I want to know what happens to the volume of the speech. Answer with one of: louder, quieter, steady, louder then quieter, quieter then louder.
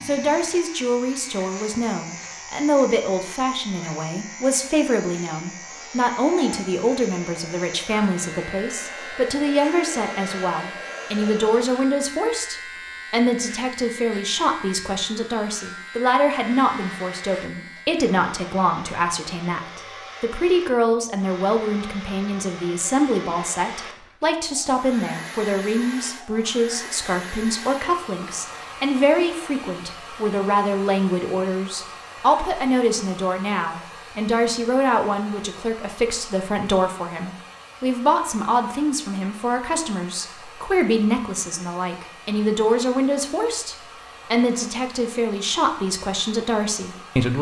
steady.